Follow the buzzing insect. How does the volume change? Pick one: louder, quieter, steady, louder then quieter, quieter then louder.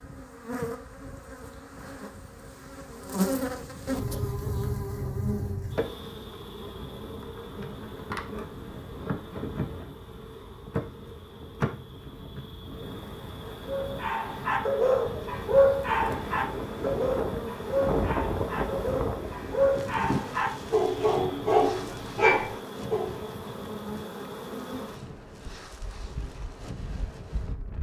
quieter.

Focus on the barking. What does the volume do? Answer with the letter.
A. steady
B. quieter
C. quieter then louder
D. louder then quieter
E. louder
C.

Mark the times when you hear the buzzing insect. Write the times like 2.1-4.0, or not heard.
0.0-27.7.